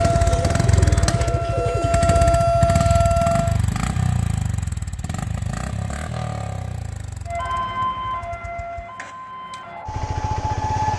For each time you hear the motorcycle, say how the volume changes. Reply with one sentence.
You can hear the motorcycle from 0.0 to 10.9 s, getting quieter.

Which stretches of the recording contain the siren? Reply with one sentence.
You can hear the siren from 0.0 to 3.6 s and from 7.2 to 10.9 s.